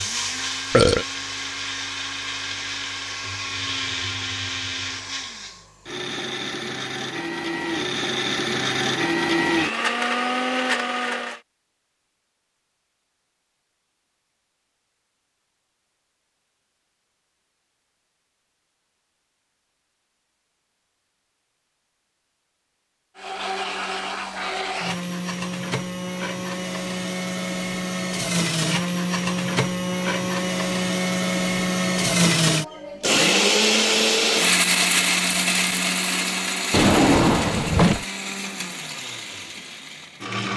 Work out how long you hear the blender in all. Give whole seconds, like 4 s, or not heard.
29 s.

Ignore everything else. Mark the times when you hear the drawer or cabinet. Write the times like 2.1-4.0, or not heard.
36.7-38.0.